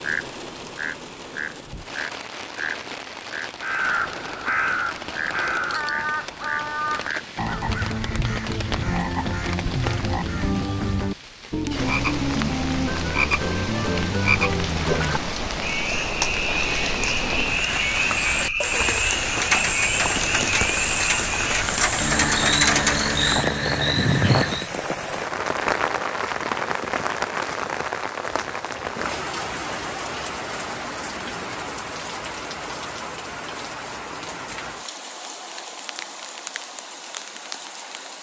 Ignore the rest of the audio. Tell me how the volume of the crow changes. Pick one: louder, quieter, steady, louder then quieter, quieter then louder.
quieter.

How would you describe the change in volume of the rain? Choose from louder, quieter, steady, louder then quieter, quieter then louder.
louder then quieter.